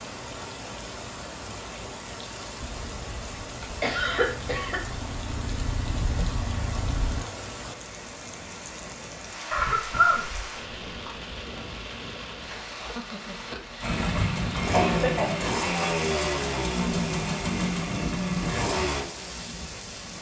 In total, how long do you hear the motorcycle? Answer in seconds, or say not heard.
11 s.